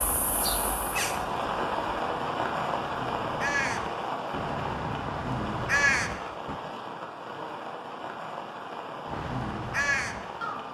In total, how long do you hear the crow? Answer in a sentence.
You can hear the crow for 8 seconds altogether.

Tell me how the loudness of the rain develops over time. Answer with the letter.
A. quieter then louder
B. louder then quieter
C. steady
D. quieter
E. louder
D.